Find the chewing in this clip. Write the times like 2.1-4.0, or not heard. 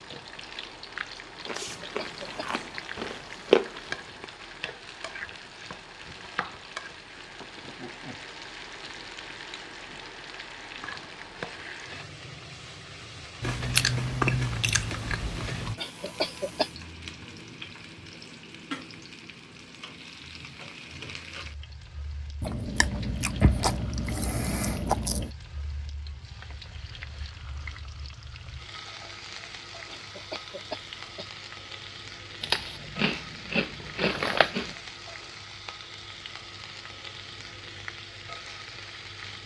1.4-4.2, 13.4-15.8, 22.4-25.3, 32.4-34.8.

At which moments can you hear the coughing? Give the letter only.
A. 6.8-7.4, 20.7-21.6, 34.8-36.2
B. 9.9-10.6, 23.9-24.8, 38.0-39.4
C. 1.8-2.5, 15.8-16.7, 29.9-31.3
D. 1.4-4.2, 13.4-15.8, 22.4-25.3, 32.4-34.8
C.